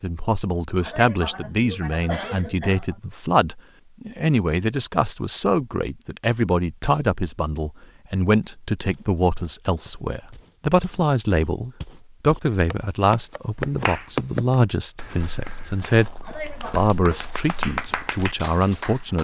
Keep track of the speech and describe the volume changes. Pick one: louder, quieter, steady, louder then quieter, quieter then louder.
steady.